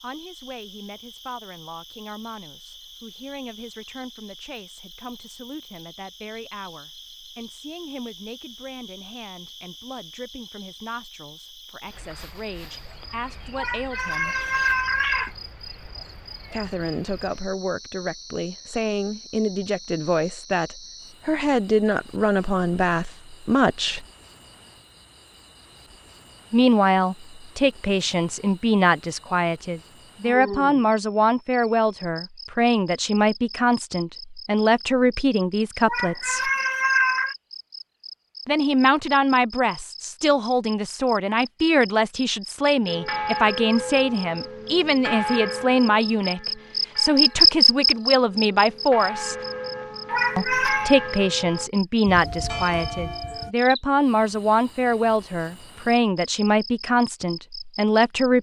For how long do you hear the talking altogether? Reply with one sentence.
You can hear the talking for 51 seconds altogether.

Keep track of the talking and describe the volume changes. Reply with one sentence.
The volume of the talking goes up.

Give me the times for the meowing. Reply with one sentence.
The meowing can be heard from 13.6 to 15.3 s, from 35.9 to 37.4 s and from 50.1 to 50.9 s.